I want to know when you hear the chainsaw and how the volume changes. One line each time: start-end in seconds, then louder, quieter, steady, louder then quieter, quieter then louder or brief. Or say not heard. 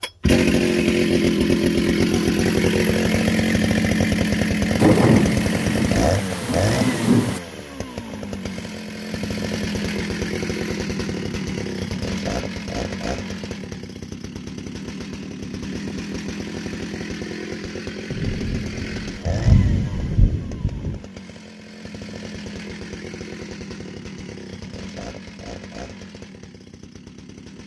0.0-27.6 quieter.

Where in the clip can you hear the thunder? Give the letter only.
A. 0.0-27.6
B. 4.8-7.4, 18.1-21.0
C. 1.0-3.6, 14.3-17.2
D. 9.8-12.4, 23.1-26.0
B.